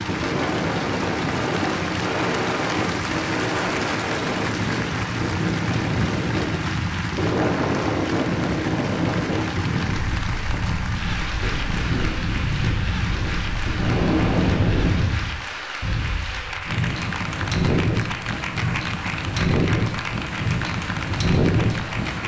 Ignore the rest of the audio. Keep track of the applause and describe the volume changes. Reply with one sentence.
The loudness of the applause stays about the same.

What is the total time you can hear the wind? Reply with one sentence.
You can hear the wind for 22 seconds altogether.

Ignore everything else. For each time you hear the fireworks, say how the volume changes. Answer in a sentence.
The fireworks can't be heard in this clip.